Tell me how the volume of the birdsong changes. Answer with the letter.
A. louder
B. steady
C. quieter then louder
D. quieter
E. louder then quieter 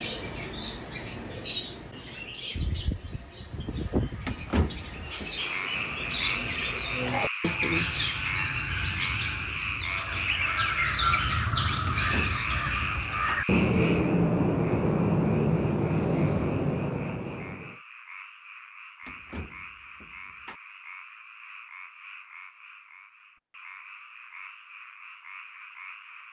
A.